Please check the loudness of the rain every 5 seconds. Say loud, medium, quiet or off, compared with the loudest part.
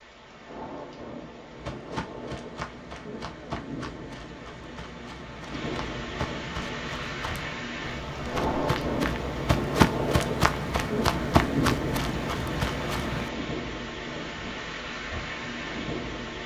medium, loud, loud, loud.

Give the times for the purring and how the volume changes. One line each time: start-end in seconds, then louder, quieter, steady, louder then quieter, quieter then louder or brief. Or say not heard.
not heard.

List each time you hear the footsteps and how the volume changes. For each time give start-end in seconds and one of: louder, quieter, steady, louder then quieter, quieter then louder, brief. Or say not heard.
1.5-13.3 louder.